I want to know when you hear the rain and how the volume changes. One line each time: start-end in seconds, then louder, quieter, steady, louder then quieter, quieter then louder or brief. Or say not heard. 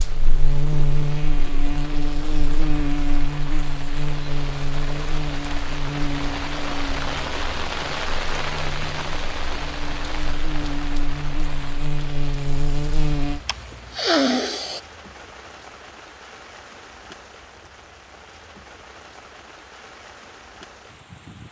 0.0-21.4 louder then quieter.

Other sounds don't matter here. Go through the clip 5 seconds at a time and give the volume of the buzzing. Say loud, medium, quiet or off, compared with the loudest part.
loud, medium, loud, off, off.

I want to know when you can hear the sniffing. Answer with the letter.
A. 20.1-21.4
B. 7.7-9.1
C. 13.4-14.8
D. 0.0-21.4
C.